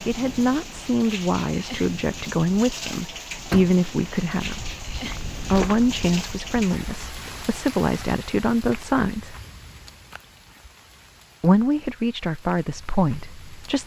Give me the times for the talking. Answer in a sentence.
The talking can be heard from 0.1 to 4.8 s, from 5.3 to 9.3 s and from 11.4 to 13.8 s.